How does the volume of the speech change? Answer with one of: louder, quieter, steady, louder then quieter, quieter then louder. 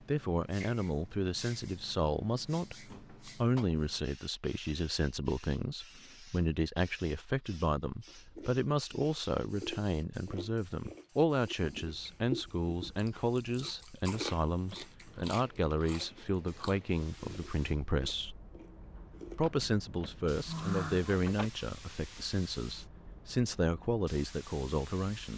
steady.